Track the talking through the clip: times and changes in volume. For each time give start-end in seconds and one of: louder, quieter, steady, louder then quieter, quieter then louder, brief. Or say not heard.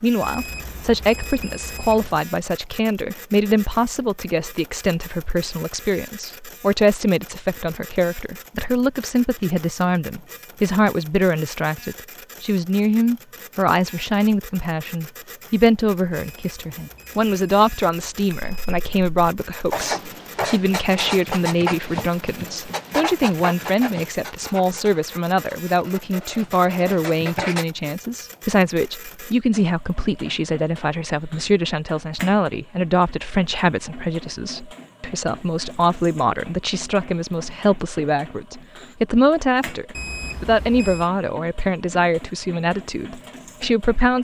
0.0-44.1 steady.